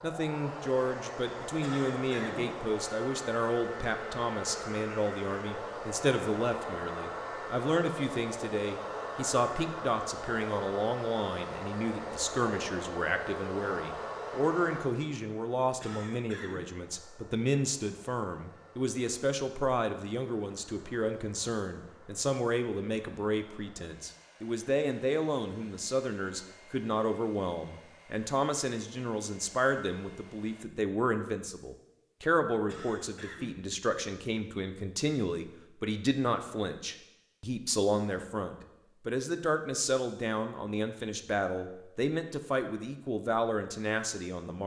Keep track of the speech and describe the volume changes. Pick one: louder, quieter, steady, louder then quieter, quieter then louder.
steady.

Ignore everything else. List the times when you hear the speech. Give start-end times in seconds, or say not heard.
0.0-44.6.